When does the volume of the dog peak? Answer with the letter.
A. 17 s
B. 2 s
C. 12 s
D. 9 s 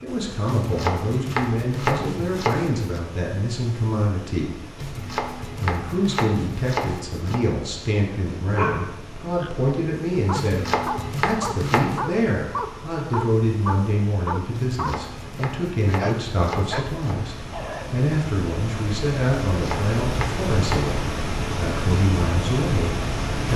D.